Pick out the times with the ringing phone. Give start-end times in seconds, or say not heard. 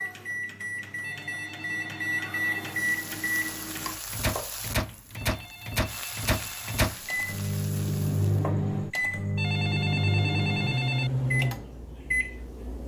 1.0-2.8, 5.2-6.8, 9.3-11.1.